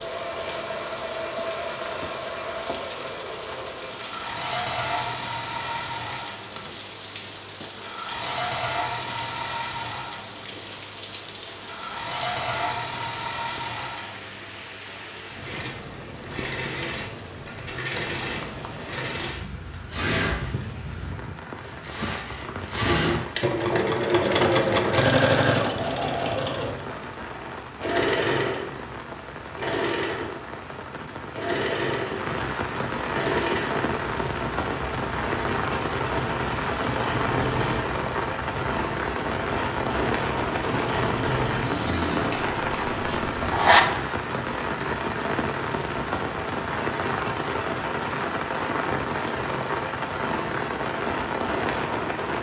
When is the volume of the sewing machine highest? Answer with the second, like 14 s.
25 s.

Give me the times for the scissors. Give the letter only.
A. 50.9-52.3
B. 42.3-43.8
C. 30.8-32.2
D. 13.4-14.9
B.